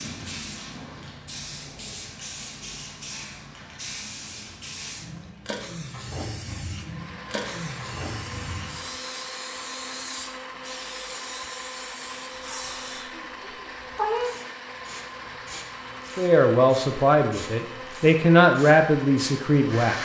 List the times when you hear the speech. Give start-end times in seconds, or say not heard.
16.1-20.0.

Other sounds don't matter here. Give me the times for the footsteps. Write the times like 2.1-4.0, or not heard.
not heard.